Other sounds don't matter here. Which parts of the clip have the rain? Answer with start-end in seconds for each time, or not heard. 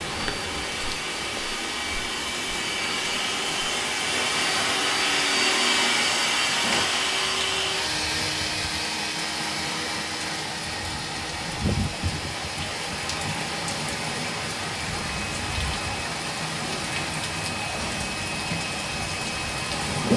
0.0-20.1.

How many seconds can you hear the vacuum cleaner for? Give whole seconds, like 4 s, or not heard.
20 s.